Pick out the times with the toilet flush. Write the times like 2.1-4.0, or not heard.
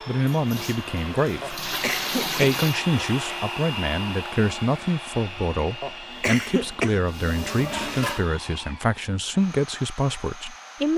0.2-2.8, 6.0-8.2.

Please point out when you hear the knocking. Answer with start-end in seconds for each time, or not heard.
not heard.